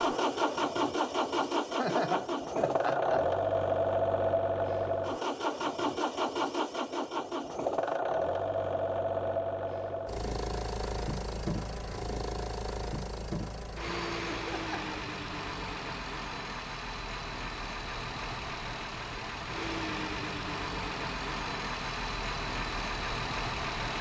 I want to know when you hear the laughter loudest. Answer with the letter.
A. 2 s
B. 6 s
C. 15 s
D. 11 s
A.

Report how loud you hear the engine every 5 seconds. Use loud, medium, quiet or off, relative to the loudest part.
loud, loud, medium, medium, medium.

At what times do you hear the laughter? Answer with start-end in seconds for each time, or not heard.
1.8-3.3, 14.3-14.9.